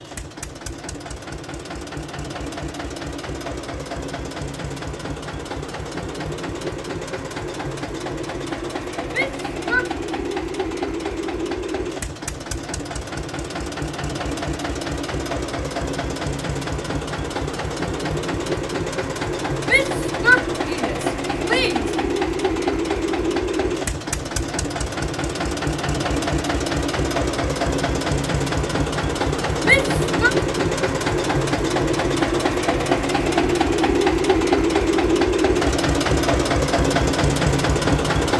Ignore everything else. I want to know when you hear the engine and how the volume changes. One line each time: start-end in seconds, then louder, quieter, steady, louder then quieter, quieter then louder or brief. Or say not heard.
0.0-38.3 louder.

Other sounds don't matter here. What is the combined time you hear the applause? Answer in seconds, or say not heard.
not heard.